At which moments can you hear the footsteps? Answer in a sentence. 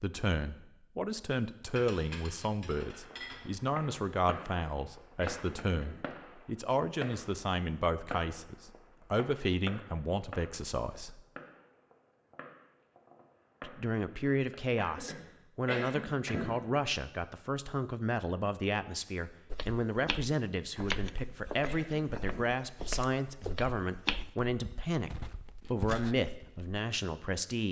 The footsteps can be heard from 19.5 to 26.8 s.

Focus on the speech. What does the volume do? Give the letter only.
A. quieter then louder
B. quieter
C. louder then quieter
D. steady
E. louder
D.